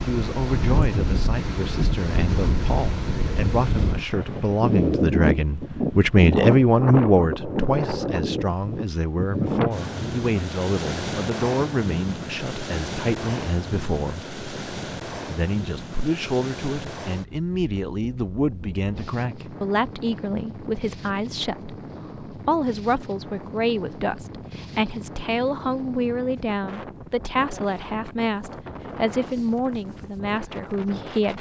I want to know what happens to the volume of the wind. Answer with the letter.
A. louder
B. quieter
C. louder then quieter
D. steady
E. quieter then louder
B.